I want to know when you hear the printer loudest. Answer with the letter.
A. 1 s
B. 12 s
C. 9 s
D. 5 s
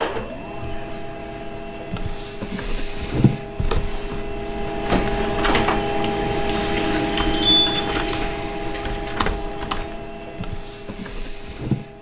D.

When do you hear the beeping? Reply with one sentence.
The beeping can be heard from 6.9 to 8.2 s.